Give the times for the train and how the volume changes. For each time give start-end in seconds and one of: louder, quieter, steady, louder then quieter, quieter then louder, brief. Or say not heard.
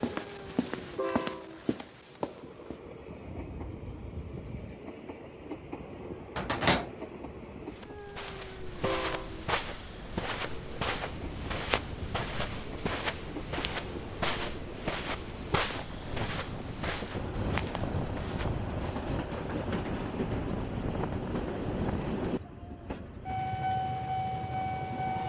0.1-25.2 louder.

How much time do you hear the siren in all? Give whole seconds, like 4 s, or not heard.
not heard.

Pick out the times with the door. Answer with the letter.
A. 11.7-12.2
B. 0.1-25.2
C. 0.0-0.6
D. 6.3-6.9
D.